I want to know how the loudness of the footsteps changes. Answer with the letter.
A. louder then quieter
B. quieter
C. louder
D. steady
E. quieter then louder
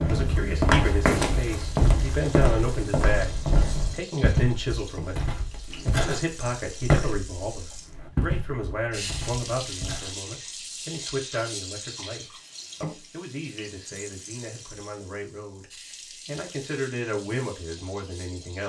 B.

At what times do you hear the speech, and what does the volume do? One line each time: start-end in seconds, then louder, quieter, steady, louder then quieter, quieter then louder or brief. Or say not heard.
0.0-15.7 quieter
16.2-18.6 brief.